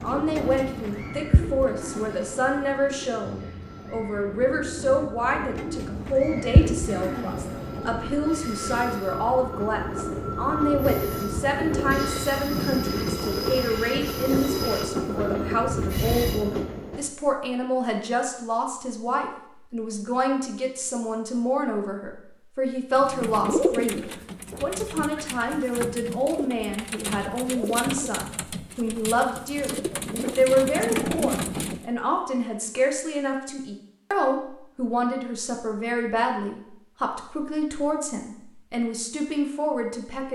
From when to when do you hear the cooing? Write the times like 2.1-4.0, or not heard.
0.0-8.2, 22.9-31.9.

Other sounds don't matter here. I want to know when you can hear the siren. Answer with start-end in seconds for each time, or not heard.
not heard.